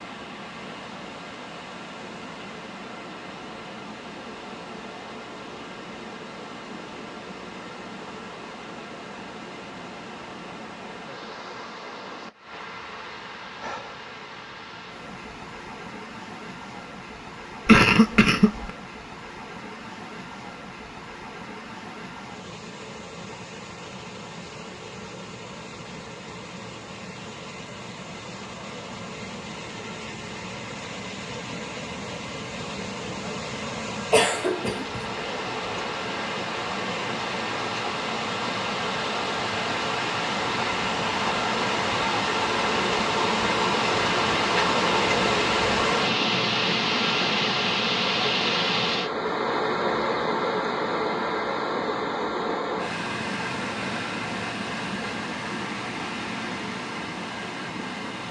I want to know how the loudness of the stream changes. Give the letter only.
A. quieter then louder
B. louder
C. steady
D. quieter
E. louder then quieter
B.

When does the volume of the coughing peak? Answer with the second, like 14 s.
18 s.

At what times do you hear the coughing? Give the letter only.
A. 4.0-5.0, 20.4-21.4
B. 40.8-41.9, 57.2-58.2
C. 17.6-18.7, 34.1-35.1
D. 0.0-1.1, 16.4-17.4
C.